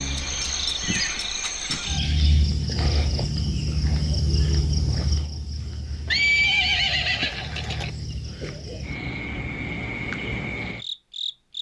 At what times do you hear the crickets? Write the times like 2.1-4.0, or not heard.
0.0-11.5.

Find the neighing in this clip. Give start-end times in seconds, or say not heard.
0.8-1.9, 6.0-7.9.